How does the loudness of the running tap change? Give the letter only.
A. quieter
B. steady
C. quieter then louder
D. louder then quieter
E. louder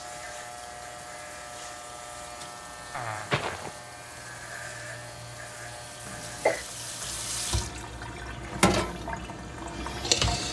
E.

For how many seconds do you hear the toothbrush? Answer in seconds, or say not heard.
not heard.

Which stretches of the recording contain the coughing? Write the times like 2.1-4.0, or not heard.
2.9-3.7, 6.0-6.7.